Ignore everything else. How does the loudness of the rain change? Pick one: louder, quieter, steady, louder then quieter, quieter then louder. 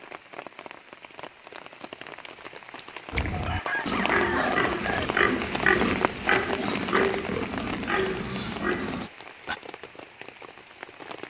louder then quieter.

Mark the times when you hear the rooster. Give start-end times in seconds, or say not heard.
3.3-5.1.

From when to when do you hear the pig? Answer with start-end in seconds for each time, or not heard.
3.1-9.6.